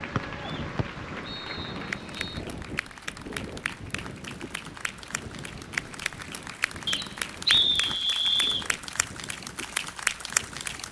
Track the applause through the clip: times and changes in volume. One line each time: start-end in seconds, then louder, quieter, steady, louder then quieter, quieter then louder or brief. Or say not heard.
0.0-10.8 louder.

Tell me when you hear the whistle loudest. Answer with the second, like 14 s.
8 s.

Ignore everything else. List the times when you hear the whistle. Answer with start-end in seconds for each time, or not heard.
0.1-2.4, 6.8-8.7.